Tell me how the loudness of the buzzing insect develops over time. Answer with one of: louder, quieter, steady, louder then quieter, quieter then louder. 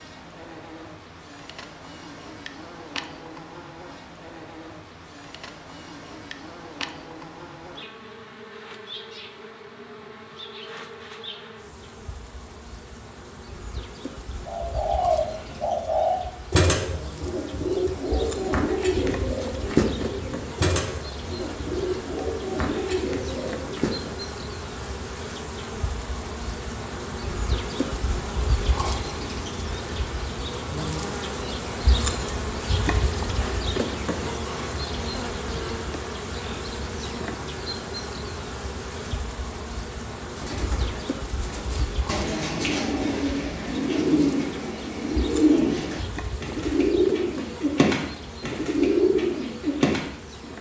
louder then quieter.